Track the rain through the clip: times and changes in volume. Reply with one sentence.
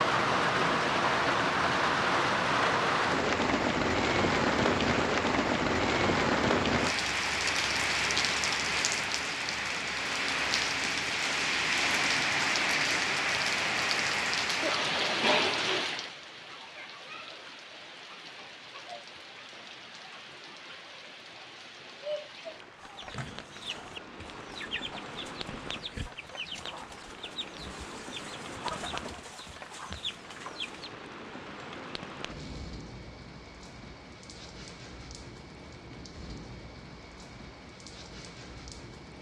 The rain can be heard from 0.0 to 39.1 s, getting quieter.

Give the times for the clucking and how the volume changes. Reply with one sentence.
The clucking can be heard from 22.8 to 30.9 s, at a steady volume.